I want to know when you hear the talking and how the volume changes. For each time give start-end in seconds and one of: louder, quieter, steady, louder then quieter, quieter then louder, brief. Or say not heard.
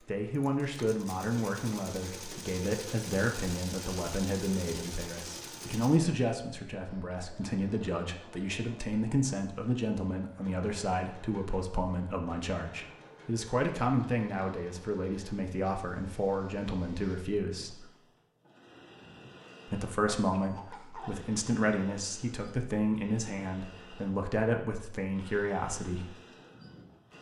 0.1-17.9 steady
19.6-26.1 steady.